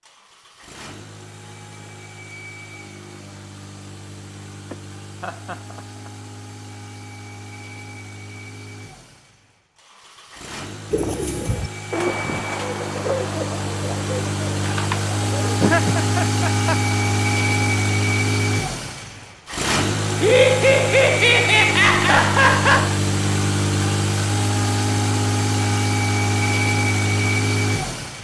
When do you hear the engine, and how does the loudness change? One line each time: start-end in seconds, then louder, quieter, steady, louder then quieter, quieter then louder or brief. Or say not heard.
0.0-28.1 louder.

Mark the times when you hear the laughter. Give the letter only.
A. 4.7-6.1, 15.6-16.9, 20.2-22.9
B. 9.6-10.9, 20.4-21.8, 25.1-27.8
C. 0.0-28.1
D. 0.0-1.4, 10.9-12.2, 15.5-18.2
A.